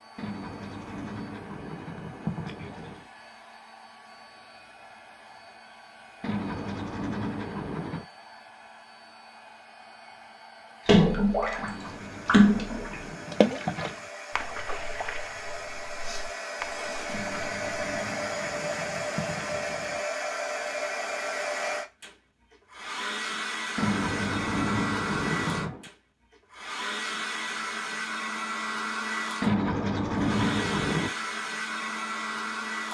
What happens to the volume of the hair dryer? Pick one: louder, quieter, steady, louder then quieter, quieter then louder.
louder.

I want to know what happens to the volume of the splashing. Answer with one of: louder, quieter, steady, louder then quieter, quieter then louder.
louder then quieter.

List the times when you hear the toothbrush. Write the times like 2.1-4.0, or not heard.
0.1-3.0, 6.2-8.1, 11.6-14.1, 17.1-20.1, 23.8-25.9, 29.4-31.1.